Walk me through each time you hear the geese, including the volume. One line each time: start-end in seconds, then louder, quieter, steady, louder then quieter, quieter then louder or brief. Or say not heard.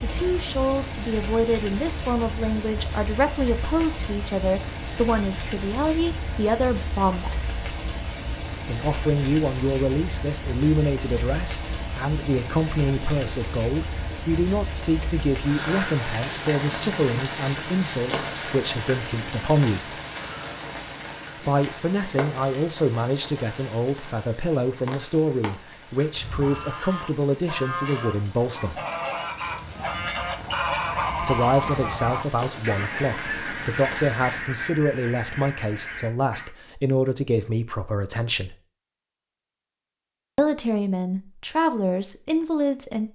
26.1-36.5 louder then quieter.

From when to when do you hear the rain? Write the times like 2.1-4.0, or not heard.
0.0-34.5.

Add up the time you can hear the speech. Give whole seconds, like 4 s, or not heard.
36 s.